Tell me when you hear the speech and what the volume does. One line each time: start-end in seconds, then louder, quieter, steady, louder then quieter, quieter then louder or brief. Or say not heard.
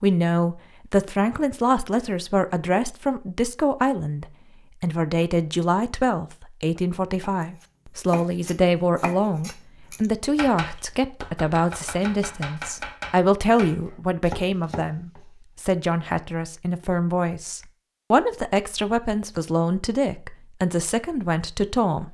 0.0-22.0 steady.